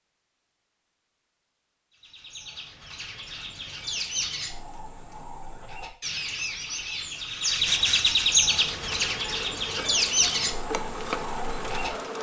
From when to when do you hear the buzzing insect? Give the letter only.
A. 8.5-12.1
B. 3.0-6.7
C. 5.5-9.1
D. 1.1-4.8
A.